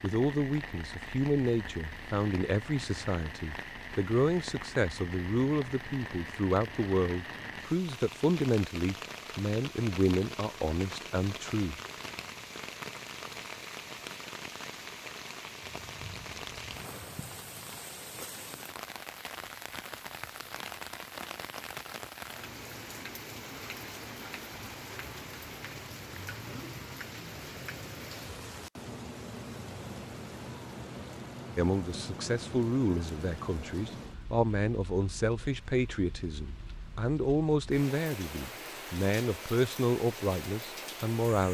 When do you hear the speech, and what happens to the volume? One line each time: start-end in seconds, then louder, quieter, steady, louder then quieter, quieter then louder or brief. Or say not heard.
0.0-11.8 steady
31.6-41.4 steady.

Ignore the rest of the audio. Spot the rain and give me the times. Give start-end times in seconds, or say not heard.
0.0-41.4.